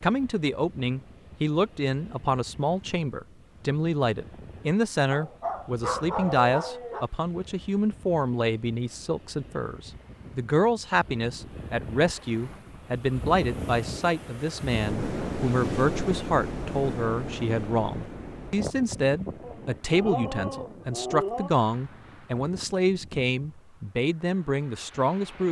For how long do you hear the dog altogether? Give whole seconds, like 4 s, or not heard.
4 s.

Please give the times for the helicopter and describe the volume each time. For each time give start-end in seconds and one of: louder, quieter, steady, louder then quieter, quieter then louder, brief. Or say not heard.
not heard.